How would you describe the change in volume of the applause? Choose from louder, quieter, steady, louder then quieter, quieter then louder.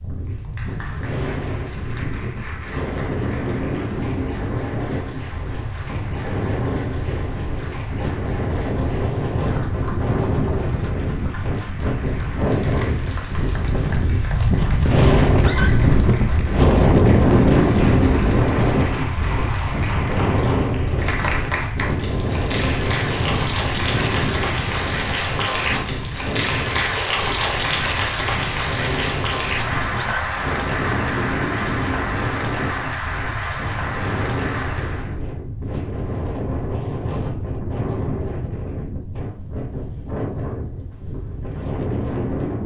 louder.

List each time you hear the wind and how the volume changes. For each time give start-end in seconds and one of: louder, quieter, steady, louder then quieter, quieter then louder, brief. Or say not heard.
0.0-42.6 louder then quieter.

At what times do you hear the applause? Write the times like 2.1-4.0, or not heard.
0.1-35.1.